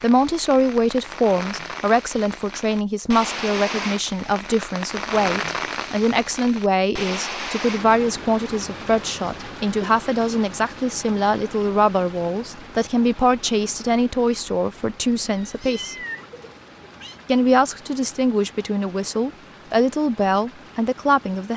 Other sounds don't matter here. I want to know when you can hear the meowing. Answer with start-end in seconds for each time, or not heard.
15.3-17.2.